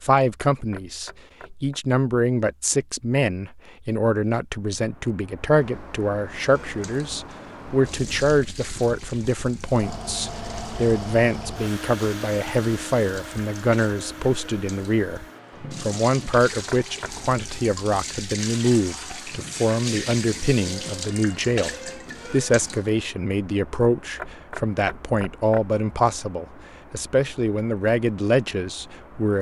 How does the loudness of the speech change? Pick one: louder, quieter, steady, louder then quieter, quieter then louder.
steady.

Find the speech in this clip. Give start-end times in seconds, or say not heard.
0.0-29.3.